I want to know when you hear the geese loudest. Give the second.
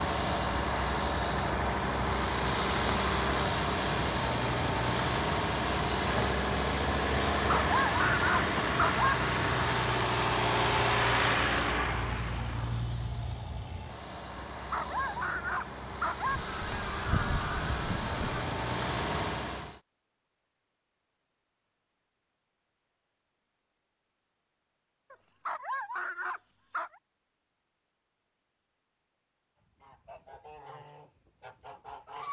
17 s.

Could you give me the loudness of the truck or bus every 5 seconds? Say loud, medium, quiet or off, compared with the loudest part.
loud, loud, loud, medium, off, off, off.